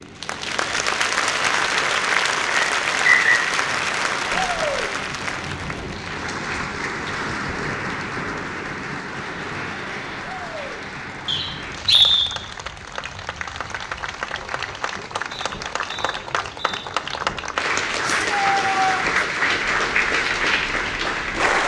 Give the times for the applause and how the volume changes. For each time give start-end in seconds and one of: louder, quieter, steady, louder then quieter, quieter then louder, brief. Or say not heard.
0.0-21.6 quieter then louder.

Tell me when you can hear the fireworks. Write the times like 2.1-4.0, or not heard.
not heard.